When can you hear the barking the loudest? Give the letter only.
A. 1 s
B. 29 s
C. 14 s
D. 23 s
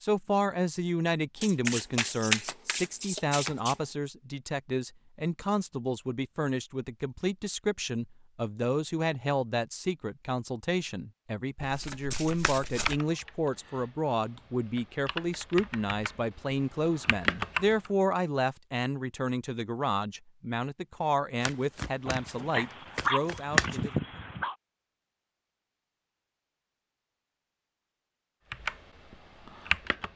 D.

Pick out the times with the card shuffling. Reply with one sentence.
The card shuffling can be heard from 1.4 to 3.8 s, from 11.6 to 13.0 s, from 21.4 to 22.3 s and from 22.9 to 23.8 s.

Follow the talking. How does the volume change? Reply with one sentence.
The loudness of the talking stays about the same.